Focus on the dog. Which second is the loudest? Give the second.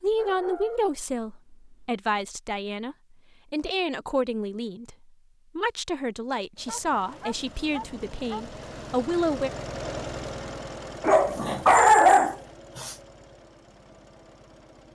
12 s.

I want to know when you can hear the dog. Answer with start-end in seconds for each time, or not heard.
0.1-1.9, 6.7-8.4, 11.0-12.9.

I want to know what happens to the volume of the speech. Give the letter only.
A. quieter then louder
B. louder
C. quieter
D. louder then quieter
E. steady
E.